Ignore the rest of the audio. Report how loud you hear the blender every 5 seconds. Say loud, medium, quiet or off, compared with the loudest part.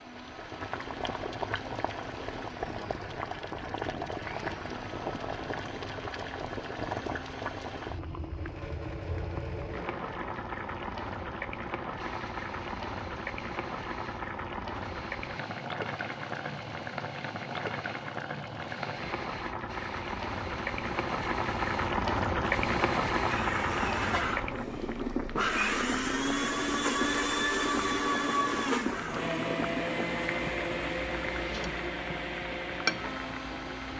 quiet, quiet, quiet, quiet, medium, loud, medium.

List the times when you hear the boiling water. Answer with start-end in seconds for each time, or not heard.
0.0-33.9.